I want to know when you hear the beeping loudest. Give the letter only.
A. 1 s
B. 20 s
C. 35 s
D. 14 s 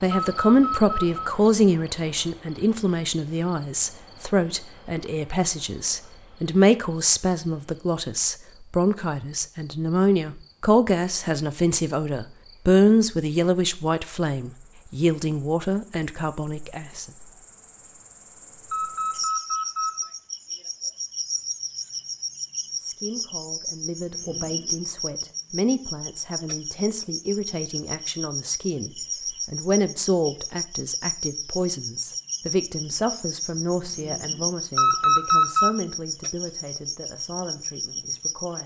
C.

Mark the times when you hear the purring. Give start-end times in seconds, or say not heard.
not heard.